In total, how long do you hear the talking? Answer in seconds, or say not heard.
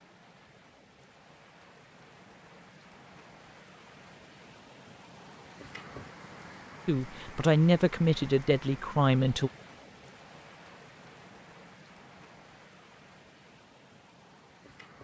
3 s.